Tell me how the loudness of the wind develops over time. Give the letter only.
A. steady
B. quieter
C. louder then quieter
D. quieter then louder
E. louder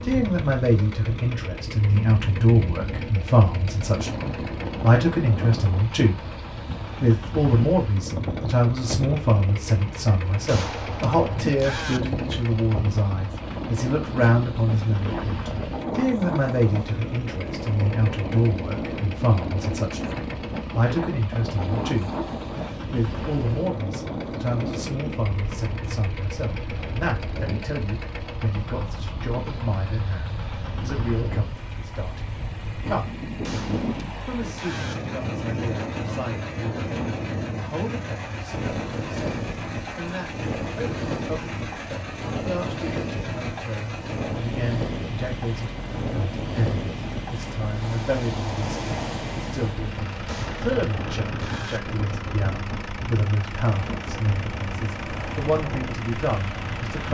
A.